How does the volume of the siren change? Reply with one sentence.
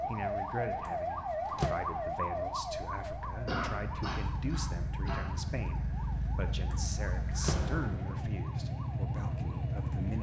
The loudness of the siren goes down.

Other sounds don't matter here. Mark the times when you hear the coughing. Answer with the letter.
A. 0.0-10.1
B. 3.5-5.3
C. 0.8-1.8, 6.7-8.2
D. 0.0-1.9
B.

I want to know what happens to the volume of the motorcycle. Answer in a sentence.
The loudness of the motorcycle goes up.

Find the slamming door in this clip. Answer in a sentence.
You can hear the slamming door from 0.8 to 1.8 s and from 6.7 to 8.2 s.